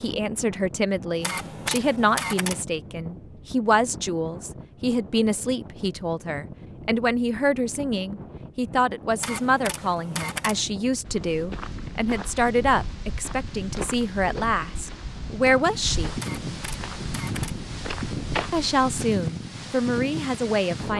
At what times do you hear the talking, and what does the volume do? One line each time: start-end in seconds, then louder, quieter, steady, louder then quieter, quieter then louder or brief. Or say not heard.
0.0-16.1 steady
18.5-20.9 brief.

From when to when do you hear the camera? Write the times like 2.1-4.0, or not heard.
1.2-2.6, 9.2-10.7, 16.1-17.6.